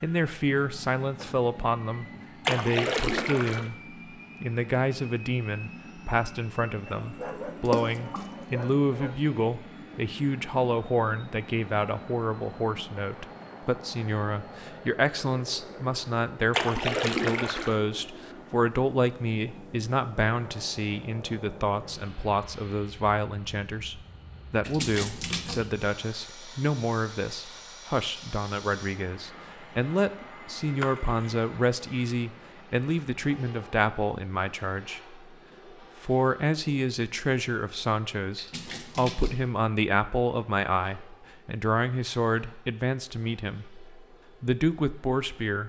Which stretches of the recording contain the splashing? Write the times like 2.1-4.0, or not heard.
2.5-3.7, 7.7-8.3, 16.5-17.8, 24.6-25.7, 30.8-31.4, 38.4-39.5.